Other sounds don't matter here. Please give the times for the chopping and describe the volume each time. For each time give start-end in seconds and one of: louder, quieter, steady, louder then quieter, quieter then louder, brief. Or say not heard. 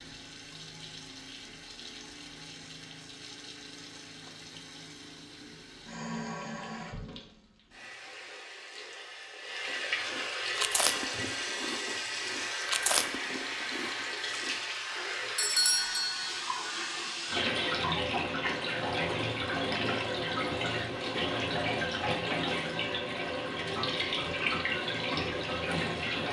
not heard.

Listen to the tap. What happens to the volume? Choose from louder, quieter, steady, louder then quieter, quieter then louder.
louder.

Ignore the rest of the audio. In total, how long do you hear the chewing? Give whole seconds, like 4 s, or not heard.
5 s.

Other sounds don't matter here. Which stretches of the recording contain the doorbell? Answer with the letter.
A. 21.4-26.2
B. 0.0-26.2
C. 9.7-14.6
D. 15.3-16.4
D.